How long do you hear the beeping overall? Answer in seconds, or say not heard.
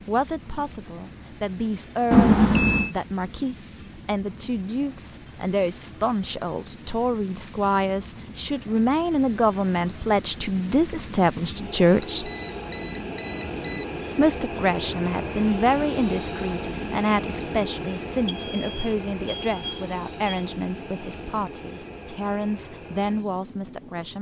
5 s.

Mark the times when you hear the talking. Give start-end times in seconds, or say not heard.
0.1-12.3, 14.2-24.1.